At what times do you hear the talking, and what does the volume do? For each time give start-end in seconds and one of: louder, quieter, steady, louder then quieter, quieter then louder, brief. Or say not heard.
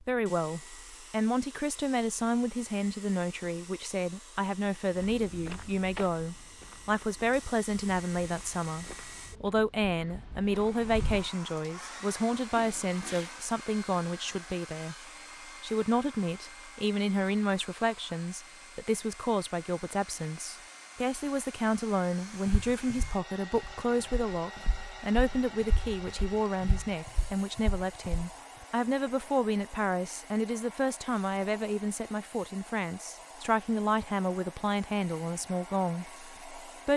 0.0-14.9 steady
15.6-36.9 steady.